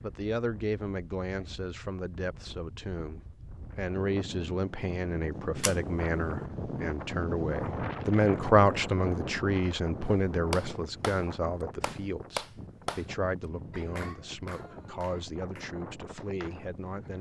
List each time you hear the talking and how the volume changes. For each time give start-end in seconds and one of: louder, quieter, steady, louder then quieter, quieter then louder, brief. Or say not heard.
0.0-17.1 louder then quieter.